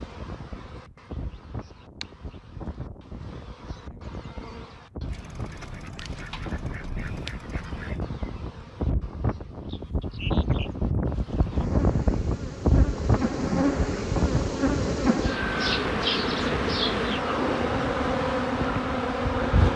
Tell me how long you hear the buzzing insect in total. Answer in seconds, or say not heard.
20 s.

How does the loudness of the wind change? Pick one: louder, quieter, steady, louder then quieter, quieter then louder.
louder then quieter.